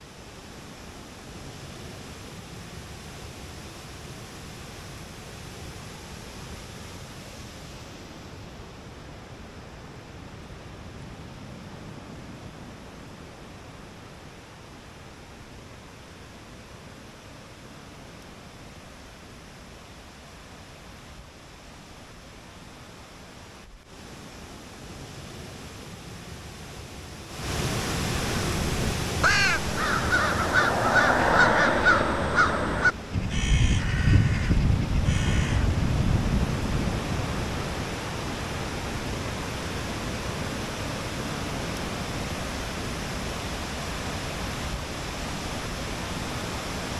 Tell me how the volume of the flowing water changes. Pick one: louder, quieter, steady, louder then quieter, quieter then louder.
louder.